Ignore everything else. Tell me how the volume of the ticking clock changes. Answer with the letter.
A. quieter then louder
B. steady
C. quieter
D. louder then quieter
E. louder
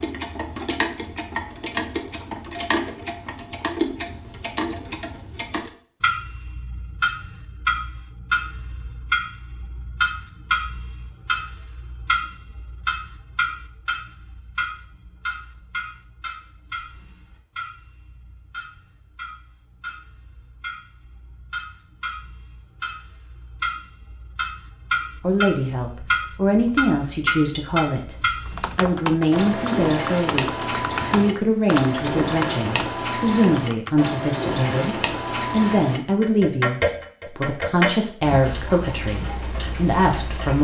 A.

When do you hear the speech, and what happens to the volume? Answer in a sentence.
The speech can be heard from 25.2 to 40.5 s, at a steady volume.